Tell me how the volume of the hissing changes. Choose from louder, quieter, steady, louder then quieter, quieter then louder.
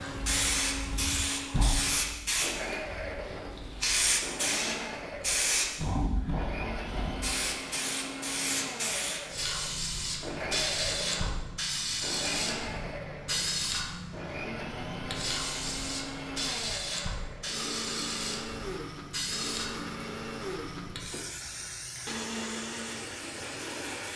quieter.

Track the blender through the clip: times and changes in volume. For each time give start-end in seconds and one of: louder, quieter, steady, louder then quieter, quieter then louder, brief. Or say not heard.
0.0-24.1 steady.